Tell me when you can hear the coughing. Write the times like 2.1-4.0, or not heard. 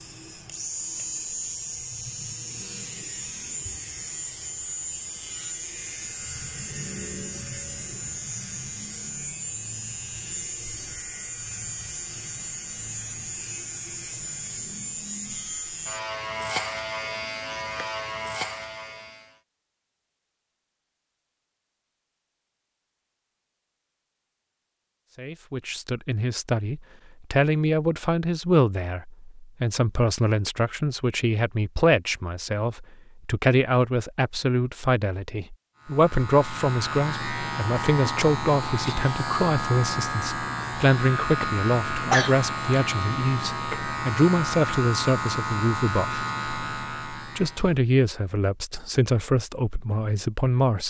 42.0-42.5.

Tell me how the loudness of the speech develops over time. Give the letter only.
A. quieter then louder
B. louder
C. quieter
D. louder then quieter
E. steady
E.